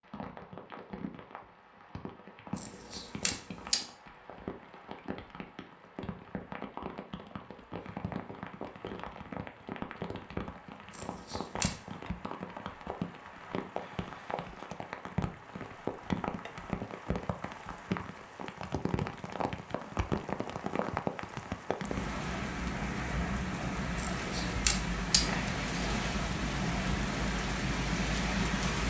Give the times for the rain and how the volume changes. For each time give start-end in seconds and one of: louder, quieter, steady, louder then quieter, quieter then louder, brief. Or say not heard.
0.0-28.8 louder.